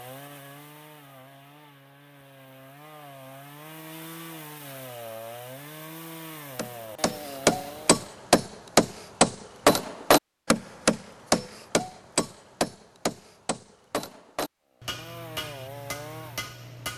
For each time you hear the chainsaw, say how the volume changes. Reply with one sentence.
The chainsaw can be heard from 0.0 to 8.1 s, getting louder; and briefly from 14.7 to 16.9 s.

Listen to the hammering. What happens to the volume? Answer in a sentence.
The loudness of the hammering goes down.